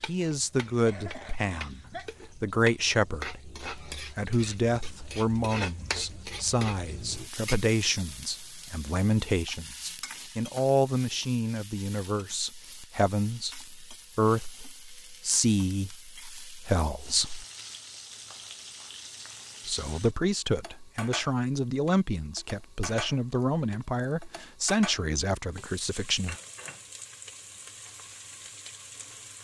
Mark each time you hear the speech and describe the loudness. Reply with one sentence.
The speech can be heard from 0.0 to 17.4 s, at a steady volume; and from 19.6 to 26.4 s, at a steady volume.